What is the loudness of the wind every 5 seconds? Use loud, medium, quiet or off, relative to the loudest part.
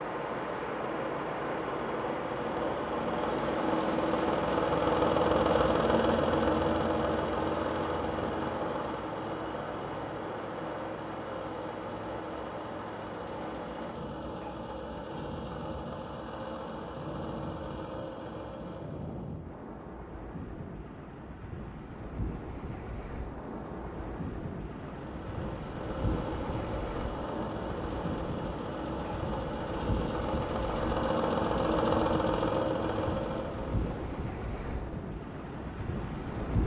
loud, loud, medium, medium, medium, loud, loud, loud.